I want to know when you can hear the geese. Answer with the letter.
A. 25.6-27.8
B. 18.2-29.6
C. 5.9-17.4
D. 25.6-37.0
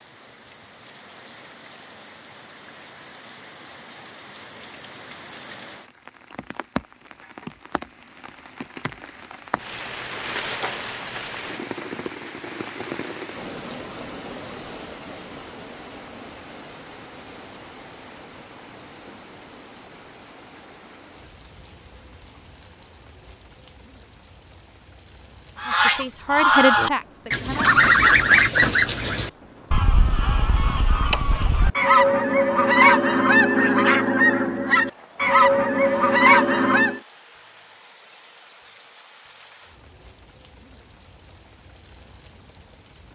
D.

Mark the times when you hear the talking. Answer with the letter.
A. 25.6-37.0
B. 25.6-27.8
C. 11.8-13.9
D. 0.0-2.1
B.